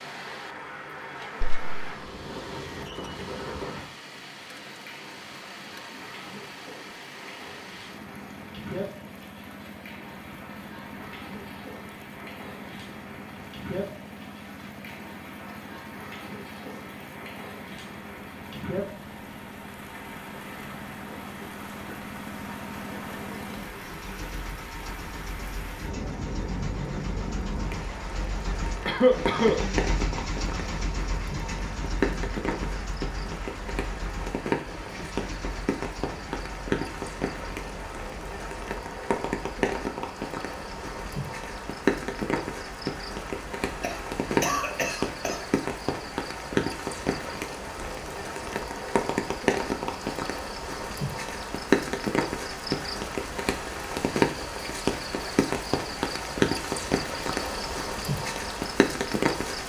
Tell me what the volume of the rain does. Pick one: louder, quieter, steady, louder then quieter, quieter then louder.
louder.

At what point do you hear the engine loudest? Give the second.
30 s.